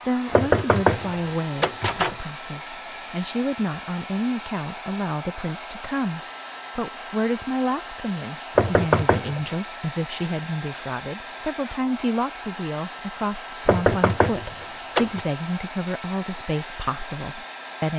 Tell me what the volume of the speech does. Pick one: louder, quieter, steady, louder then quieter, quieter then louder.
steady.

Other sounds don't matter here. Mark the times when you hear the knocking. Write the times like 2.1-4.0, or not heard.
0.3-2.1, 8.6-9.4, 13.7-15.2.